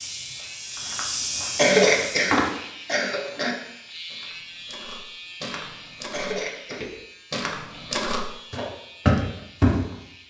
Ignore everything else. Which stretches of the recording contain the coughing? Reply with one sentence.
The coughing can be heard from 1.6 to 3.5 s and from 6.1 to 6.8 s.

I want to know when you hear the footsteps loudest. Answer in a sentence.
The volume of the footsteps peaks at 9 seconds.